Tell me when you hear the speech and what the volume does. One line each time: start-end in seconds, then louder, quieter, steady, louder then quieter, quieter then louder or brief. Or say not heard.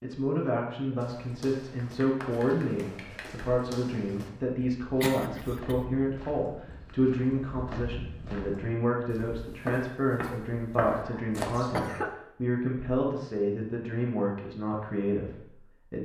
0.0-15.9 steady.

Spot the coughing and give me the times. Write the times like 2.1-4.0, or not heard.
5.0-5.8, 10.9-12.2.